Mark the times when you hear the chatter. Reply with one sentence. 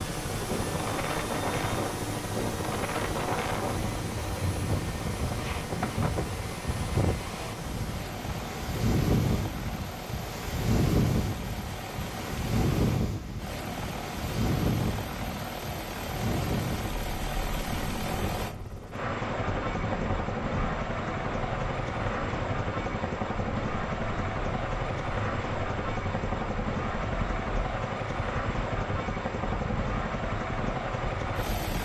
The chatter can't be heard in this clip.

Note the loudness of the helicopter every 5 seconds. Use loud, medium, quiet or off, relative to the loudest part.
loud, medium, medium, loud, loud, loud, loud.